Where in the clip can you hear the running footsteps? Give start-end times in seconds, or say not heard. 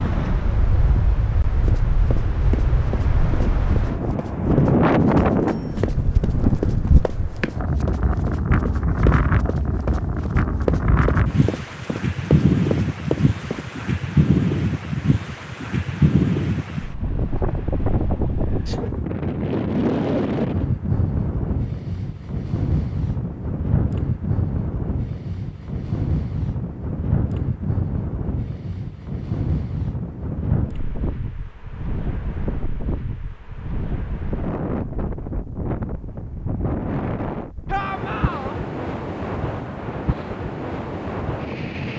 1.6-13.7.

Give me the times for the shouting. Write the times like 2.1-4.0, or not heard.
37.6-38.5.